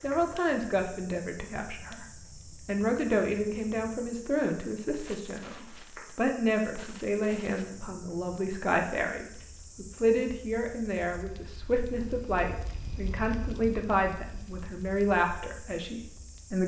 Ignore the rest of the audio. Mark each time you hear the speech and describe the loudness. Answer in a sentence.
You can hear the speech briefly from 0.0 to 2.0 s; and from 2.6 to 16.6 s, at a steady volume.